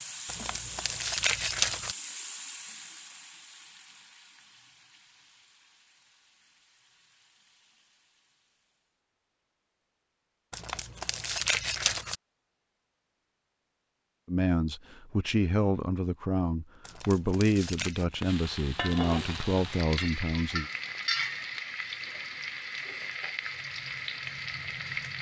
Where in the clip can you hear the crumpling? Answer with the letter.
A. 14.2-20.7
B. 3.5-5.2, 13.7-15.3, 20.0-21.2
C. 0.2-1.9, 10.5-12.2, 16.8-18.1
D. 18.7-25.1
C.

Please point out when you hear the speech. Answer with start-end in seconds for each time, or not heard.
14.2-20.7.